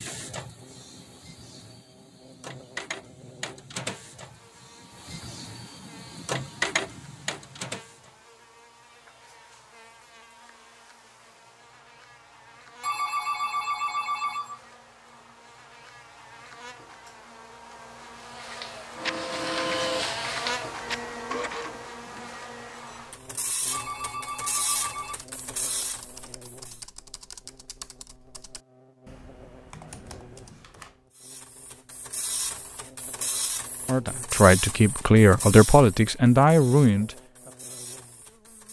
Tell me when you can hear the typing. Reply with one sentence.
The typing can be heard from 25.1 to 31.1 s.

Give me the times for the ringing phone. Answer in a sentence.
You can hear the ringing phone from 12.8 to 14.6 s and from 23.7 to 25.1 s.